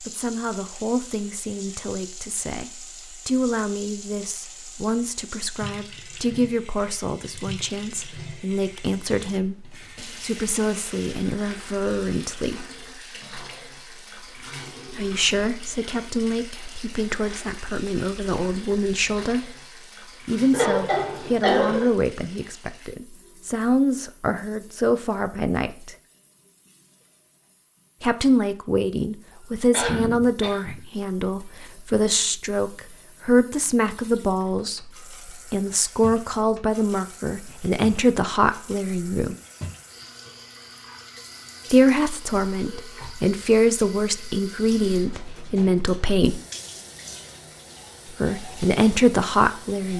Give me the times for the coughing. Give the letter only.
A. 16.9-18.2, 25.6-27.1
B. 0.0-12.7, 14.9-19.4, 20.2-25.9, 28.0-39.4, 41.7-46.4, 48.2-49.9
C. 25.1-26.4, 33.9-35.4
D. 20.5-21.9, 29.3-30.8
D.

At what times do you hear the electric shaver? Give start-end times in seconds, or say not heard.
not heard.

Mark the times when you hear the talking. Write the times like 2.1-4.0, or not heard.
0.0-12.7, 14.9-19.4, 20.2-25.9, 28.0-39.4, 41.7-46.4, 48.2-49.9.